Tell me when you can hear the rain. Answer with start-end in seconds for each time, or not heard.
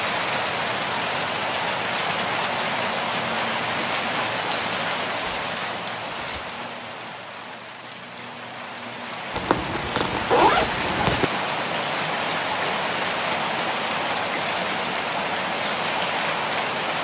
0.0-16.9.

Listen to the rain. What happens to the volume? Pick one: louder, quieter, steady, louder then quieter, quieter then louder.
quieter then louder.